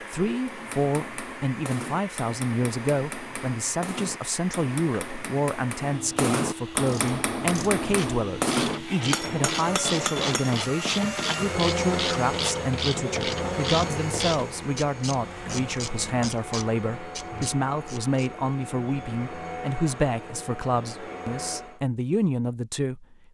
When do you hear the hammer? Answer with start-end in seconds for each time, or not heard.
0.5-10.6.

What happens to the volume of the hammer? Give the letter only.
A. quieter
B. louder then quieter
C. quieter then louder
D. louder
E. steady
D.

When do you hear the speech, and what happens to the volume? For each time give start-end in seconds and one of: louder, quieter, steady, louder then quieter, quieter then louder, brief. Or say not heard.
0.0-23.3 steady.